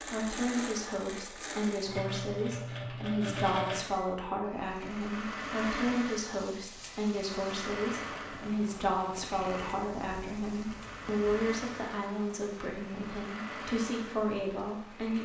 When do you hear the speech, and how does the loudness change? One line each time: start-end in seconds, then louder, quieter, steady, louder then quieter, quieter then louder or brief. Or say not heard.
0.0-15.2 steady.